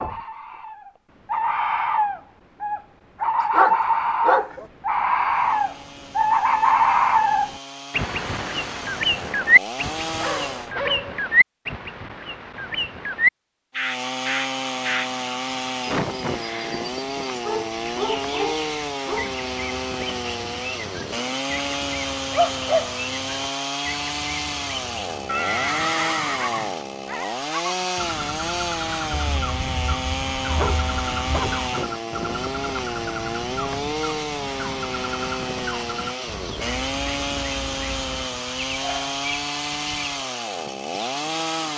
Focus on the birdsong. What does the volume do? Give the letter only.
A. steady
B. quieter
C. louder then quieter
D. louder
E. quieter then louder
B.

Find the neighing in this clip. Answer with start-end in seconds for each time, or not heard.
25.2-26.9.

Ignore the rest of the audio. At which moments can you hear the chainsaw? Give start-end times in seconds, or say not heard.
5.2-10.8, 13.8-41.7.